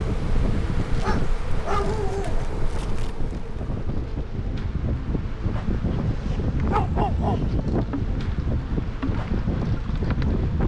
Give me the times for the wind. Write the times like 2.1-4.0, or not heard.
0.0-10.6.